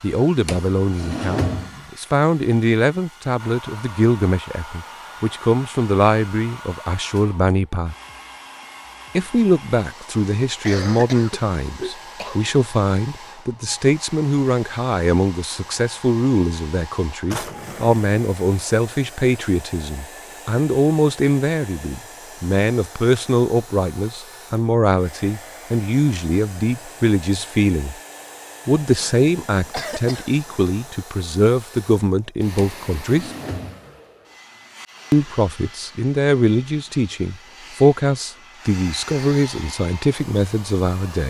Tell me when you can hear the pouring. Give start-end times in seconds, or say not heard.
not heard.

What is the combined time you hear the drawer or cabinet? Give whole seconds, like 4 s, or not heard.
4 s.